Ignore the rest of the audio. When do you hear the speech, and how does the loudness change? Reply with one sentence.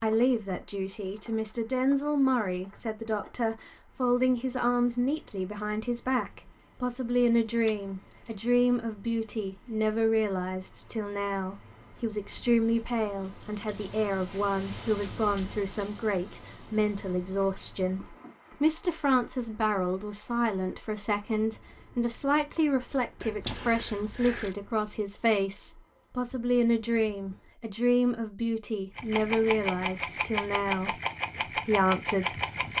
The speech can be heard from 0.0 to 32.7 s, at a steady volume.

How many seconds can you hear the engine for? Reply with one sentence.
You can hear the engine for 4 seconds altogether.